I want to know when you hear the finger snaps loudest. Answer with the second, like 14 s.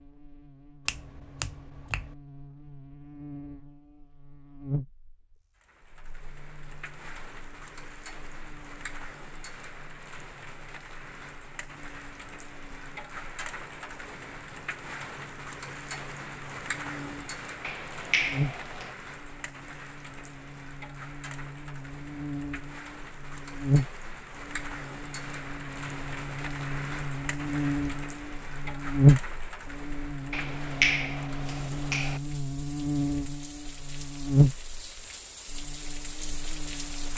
31 s.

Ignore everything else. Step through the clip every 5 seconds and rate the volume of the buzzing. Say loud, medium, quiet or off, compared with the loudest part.
quiet, quiet, quiet, quiet, medium, loud, loud, quiet.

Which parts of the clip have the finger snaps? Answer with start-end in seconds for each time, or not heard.
0.8-2.1, 17.6-18.9, 30.3-32.2.